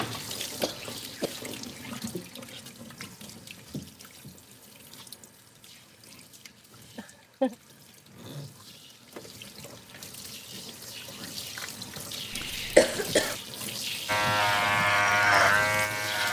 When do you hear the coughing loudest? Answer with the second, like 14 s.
13 s.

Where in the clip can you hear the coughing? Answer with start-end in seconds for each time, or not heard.
0.6-1.4, 7.0-7.5, 12.3-13.3.